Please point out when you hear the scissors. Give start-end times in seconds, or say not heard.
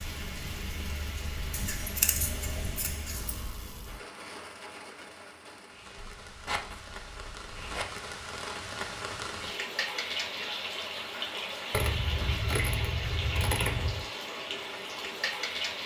1.5-3.4, 6.0-7.8, 11.7-14.1.